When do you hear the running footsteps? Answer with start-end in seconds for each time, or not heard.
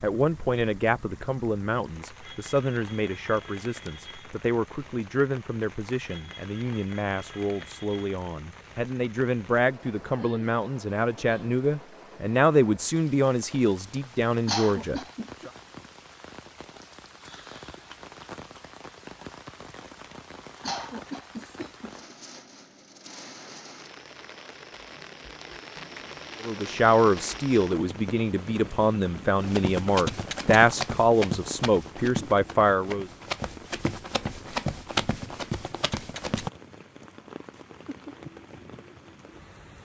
29.4-36.5.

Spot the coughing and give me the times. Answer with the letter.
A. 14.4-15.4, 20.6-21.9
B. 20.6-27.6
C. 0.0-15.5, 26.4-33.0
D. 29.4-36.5
A.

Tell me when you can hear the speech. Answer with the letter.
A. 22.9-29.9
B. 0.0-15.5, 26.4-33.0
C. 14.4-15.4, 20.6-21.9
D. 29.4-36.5
B.